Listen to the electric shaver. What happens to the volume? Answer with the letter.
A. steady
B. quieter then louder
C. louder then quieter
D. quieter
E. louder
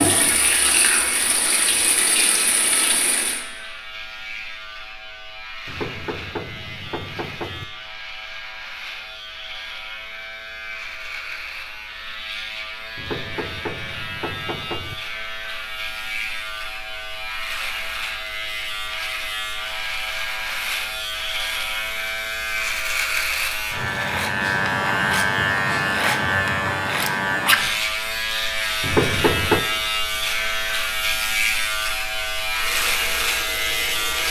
E.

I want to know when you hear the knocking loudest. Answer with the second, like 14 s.
29 s.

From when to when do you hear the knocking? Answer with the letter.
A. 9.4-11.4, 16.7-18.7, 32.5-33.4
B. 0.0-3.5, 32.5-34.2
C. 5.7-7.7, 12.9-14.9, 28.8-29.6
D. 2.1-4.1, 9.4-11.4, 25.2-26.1
C.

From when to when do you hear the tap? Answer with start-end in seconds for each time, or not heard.
0.0-3.5, 32.5-34.2.